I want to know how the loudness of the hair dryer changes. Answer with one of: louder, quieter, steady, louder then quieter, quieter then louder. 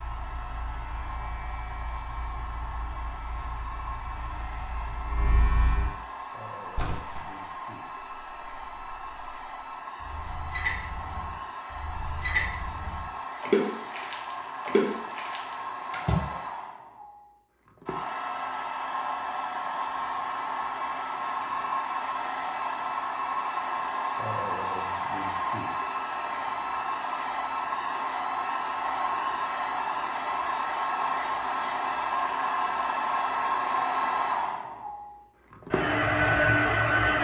louder.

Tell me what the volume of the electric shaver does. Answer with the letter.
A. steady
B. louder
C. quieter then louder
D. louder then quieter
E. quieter
B.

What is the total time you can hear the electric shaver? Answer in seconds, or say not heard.
6 s.